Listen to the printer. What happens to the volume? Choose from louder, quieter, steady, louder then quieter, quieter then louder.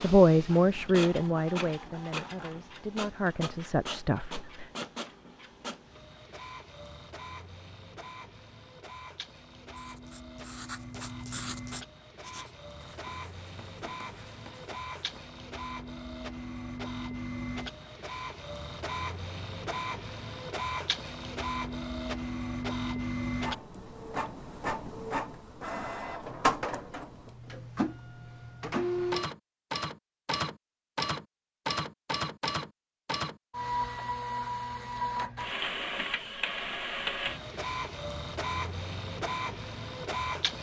louder.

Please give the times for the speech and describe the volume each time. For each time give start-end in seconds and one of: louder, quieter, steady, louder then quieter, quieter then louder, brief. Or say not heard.
0.0-4.7 quieter then louder.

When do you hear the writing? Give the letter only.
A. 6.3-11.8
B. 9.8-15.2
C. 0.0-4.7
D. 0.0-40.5
B.